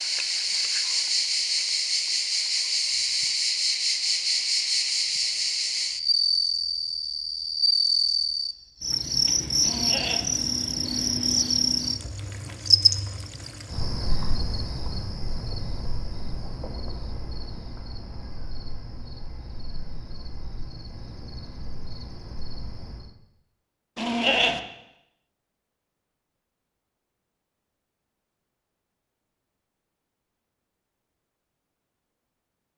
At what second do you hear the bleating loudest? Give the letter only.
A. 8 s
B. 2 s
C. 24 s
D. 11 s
C.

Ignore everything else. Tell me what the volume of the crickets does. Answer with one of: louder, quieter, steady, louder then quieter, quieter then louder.
quieter.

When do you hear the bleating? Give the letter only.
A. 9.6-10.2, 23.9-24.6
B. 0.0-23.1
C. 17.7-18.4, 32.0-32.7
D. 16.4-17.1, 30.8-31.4
A.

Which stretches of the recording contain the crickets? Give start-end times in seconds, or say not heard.
0.0-23.1.